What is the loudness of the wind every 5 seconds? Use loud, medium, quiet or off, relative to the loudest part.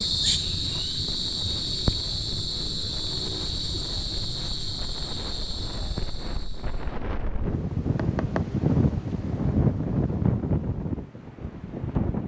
quiet, loud, loud.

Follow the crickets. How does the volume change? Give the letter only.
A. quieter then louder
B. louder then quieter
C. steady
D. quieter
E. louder
D.